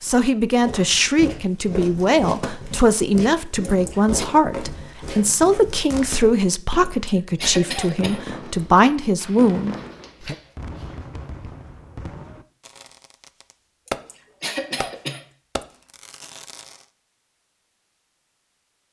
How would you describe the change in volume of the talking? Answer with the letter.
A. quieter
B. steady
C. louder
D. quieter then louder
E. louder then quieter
B.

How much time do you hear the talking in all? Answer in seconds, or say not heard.
10 s.